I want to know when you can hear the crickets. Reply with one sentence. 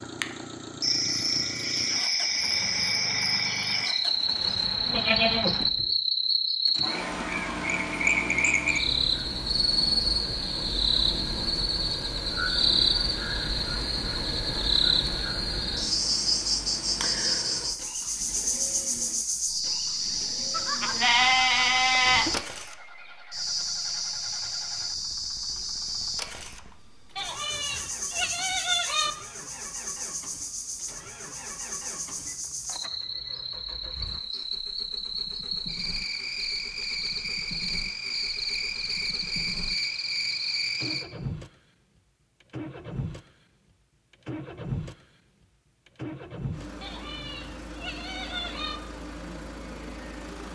The crickets can be heard from 0.0 to 41.0 s.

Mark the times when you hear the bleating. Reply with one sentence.
The bleating can be heard from 4.5 to 5.8 s, from 20.5 to 22.4 s, from 27.1 to 29.1 s and from 46.8 to 48.8 s.